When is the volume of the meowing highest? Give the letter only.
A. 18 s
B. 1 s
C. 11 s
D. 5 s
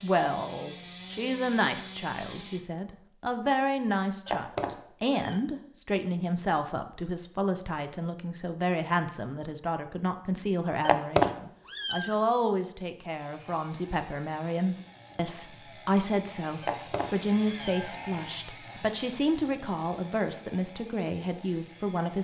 C.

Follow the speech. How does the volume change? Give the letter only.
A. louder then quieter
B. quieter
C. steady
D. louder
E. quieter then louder
C.